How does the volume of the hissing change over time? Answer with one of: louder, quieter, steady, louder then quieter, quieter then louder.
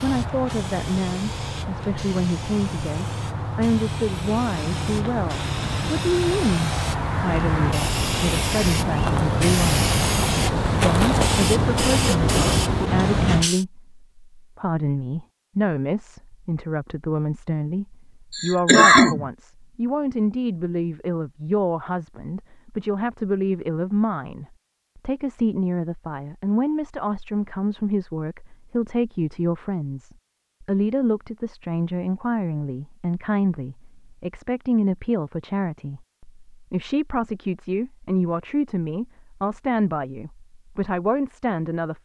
louder.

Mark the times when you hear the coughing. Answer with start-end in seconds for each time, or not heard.
18.3-19.2.